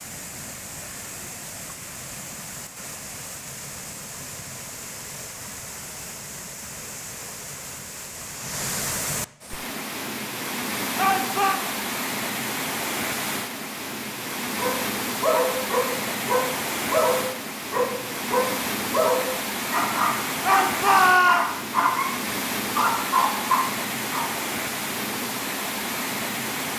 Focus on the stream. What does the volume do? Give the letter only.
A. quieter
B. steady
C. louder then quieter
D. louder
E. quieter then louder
D.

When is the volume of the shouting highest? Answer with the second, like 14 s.
21 s.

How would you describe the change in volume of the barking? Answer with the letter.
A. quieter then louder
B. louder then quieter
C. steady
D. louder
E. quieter
C.